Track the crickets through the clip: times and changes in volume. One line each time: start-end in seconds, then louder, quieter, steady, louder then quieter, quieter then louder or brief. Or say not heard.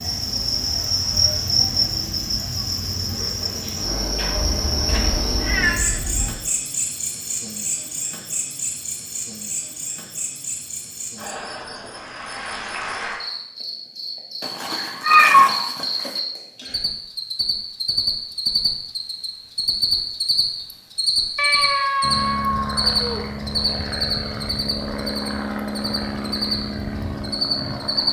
0.0-28.0 quieter then louder.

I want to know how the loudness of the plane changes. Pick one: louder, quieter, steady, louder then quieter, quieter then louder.
steady.